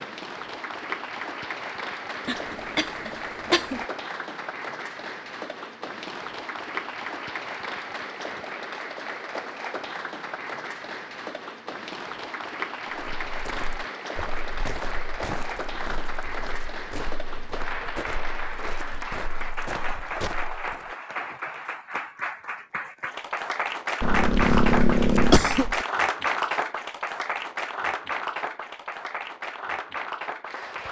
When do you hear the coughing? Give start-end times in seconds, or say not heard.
2.2-3.9, 24.0-25.9.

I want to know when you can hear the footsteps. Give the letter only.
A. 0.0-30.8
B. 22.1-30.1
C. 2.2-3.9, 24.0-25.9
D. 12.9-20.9
D.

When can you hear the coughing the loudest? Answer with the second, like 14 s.
25 s.